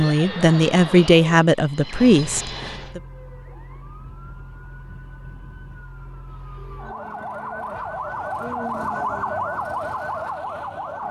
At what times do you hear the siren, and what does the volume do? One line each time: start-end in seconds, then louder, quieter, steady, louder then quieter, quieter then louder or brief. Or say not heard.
0.1-11.0 louder.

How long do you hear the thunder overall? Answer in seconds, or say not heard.
2 s.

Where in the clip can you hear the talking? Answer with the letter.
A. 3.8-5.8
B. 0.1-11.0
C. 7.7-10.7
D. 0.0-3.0
D.